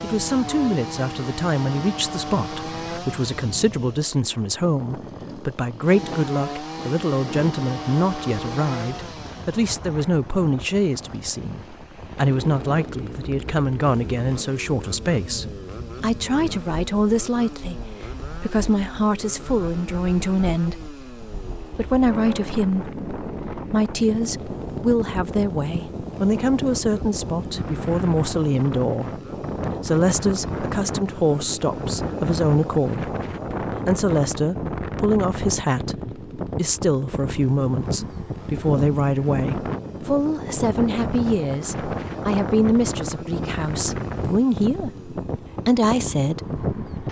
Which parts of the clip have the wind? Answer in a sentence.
You can hear the wind from 0.0 to 47.0 s.